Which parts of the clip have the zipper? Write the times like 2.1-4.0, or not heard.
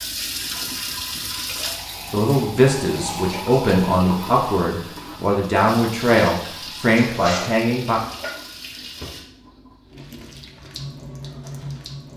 7.0-7.5.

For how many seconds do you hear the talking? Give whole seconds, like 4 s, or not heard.
6 s.